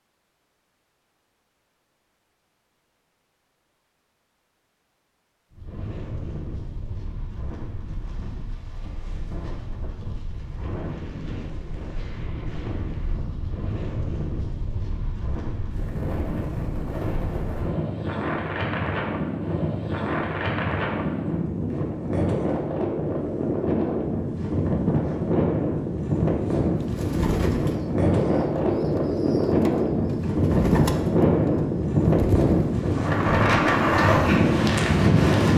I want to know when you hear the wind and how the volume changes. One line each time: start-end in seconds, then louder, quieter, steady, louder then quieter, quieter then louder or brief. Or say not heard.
5.5-35.5 louder.